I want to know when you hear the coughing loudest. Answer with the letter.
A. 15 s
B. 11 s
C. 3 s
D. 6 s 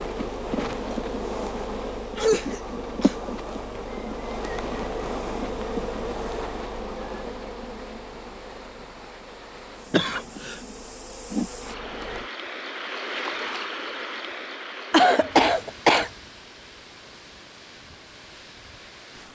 A.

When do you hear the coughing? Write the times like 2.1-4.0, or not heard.
2.1-3.3, 9.9-10.6, 14.9-16.1.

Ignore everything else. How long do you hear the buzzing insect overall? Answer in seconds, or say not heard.
12 s.